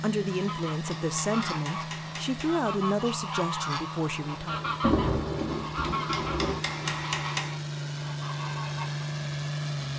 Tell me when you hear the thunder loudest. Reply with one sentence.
The volume of the thunder peaks at 5 seconds.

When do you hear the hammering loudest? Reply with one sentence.
The loudest moment of the hammering is at 7 seconds.